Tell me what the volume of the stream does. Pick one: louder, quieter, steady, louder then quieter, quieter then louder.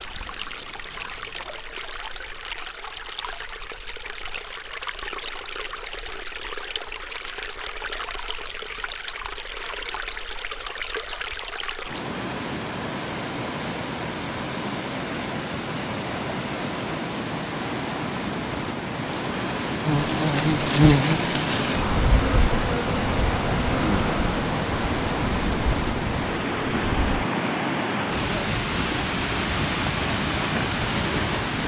louder.